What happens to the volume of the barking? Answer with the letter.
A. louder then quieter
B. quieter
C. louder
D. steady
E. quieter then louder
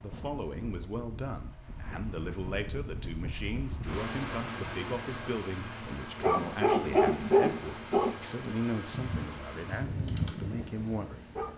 E.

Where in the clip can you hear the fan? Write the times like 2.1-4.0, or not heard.
0.0-11.5.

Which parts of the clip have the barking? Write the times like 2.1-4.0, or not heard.
6.2-11.5.